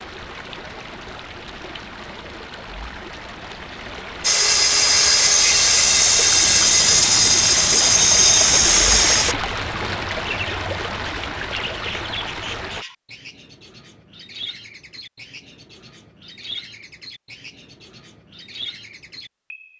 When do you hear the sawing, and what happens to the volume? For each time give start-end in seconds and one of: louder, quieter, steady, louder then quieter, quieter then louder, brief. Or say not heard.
4.2-9.3 steady.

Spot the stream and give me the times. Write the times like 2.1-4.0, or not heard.
0.0-12.8.